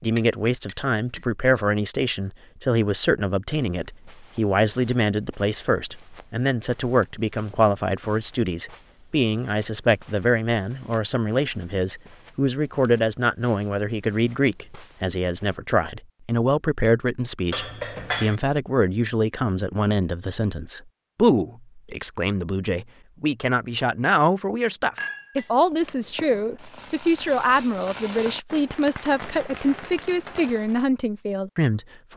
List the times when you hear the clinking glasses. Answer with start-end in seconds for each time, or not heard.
0.1-1.2, 17.5-18.4, 24.9-25.9.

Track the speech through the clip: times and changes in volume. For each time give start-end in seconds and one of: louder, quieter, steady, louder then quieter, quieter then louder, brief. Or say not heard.
0.0-32.1 steady.